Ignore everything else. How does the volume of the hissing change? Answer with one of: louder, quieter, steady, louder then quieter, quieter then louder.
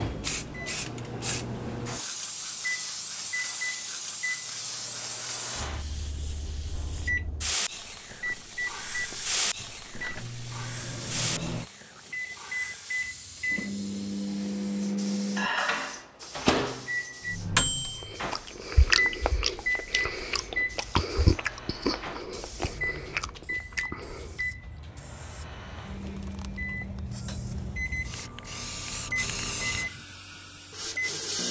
quieter then louder.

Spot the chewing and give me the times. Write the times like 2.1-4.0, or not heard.
18.0-24.4.